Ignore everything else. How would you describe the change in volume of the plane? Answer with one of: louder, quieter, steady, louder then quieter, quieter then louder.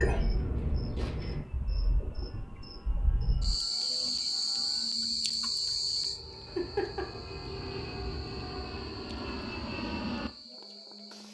louder.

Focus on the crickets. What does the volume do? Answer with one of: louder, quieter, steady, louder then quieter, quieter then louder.
louder then quieter.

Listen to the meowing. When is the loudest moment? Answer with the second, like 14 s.
7 s.